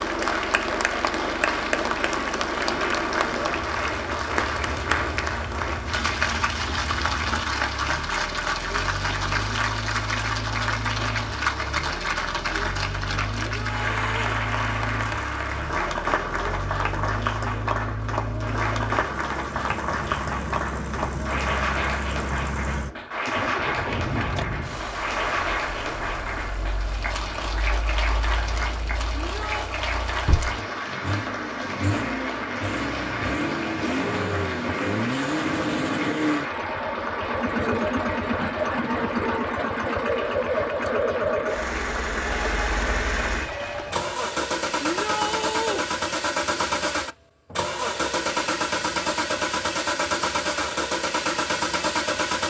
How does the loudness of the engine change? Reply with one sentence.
The volume of the engine goes up.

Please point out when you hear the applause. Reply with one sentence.
The applause can be heard from 0.0 to 44.1 s.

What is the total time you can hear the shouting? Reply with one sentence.
The shouting can be heard for 3 seconds in total.